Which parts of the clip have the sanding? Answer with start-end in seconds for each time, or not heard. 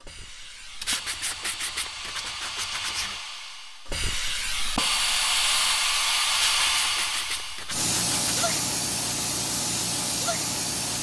0.8-3.2, 6.3-8.6.